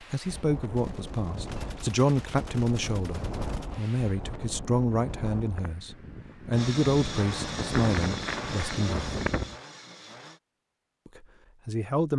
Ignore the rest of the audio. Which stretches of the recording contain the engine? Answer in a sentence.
You can hear the engine from 6.5 to 10.4 s.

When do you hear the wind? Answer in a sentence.
You can hear the wind from 0.0 to 9.6 s.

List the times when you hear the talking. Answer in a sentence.
The talking can be heard from 0.1 to 9.1 s and from 11.1 to 12.1 s.